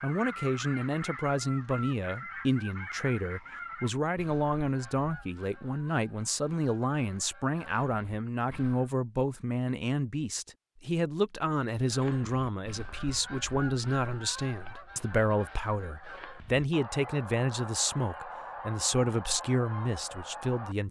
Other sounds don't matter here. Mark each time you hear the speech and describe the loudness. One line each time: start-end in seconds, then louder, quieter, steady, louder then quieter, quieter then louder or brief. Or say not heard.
0.0-20.8 steady.